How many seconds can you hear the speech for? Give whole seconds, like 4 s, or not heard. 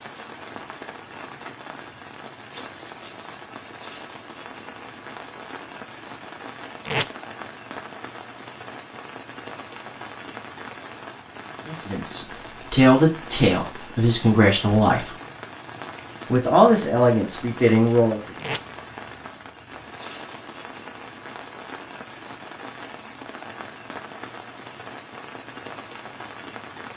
5 s.